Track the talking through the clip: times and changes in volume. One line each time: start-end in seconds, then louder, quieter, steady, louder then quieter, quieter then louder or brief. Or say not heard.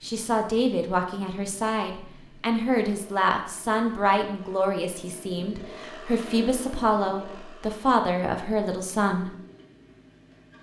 0.0-9.3 steady.